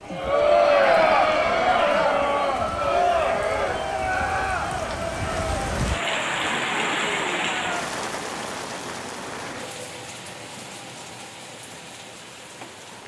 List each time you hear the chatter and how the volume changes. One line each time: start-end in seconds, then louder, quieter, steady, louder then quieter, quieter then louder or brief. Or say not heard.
0.0-7.9 quieter.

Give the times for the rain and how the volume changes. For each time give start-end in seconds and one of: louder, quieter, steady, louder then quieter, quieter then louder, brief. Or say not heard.
0.0-13.0 louder then quieter.